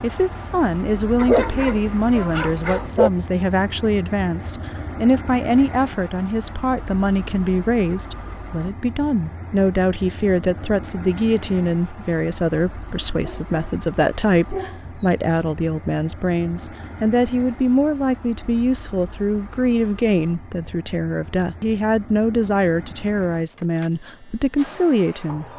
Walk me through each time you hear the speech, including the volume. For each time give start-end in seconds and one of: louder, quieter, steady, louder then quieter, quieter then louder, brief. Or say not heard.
0.0-25.4 steady.